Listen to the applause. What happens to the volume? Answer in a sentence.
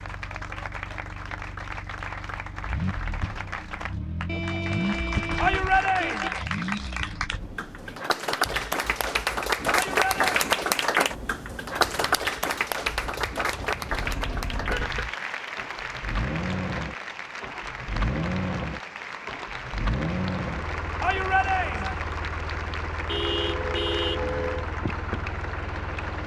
The loudness of the applause goes up, then down.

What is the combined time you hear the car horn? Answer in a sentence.
You can hear the car horn for 5 seconds altogether.